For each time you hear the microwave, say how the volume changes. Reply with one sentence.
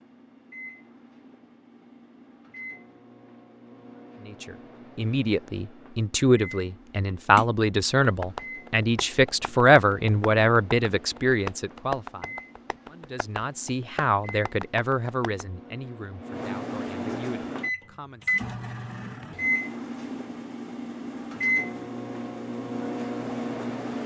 The microwave can be heard from 0.0 to 24.0 s, getting louder.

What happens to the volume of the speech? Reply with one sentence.
The loudness of the speech goes down.